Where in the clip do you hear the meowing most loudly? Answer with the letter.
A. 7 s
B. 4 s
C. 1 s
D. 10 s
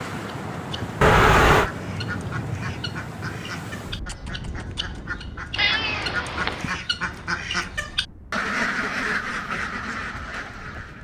C.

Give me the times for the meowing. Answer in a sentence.
The meowing can be heard from 1.0 to 1.7 s and from 5.5 to 6.7 s.